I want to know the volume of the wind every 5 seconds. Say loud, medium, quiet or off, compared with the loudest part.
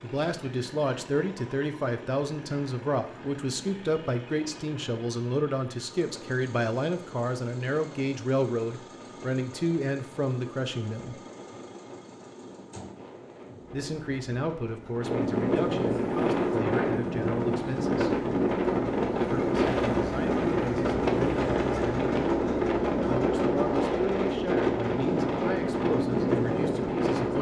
quiet, quiet, quiet, loud, loud, loud.